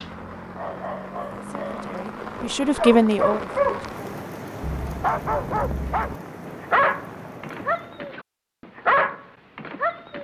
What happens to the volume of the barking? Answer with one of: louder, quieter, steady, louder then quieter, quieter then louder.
louder.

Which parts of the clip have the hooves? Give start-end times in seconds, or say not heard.
not heard.